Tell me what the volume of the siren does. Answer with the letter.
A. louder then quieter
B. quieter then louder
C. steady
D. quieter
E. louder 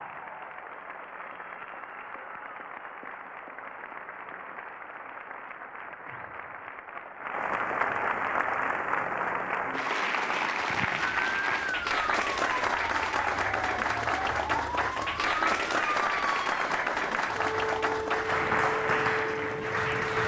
C.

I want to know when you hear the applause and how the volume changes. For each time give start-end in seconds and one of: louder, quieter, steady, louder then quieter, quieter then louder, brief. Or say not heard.
0.0-20.2 louder.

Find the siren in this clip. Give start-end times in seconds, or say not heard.
10.9-20.2.